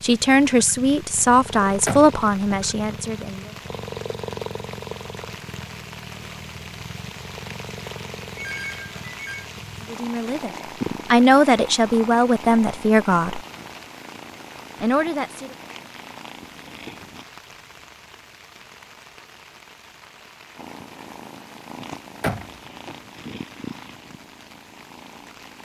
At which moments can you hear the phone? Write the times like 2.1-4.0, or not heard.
8.3-9.5.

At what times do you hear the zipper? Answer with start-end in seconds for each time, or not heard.
not heard.